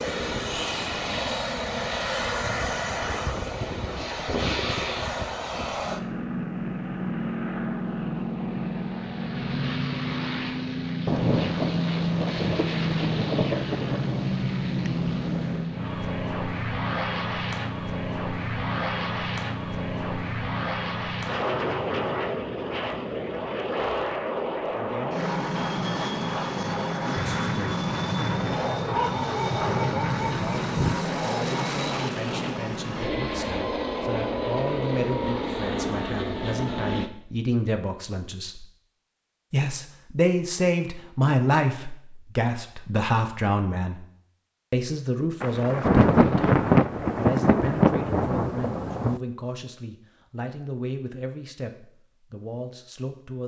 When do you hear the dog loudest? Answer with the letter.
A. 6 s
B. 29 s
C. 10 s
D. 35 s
B.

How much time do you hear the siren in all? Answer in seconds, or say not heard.
not heard.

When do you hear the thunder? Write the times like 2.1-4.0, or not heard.
11.1-15.7, 27.1-31.0, 45.4-49.2.